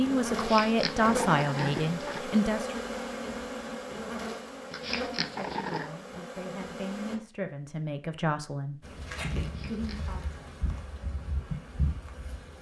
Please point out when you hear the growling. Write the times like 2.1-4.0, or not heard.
0.3-2.2, 4.7-6.0, 9.4-10.2.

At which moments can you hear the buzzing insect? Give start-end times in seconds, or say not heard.
0.0-7.2, 8.8-12.5.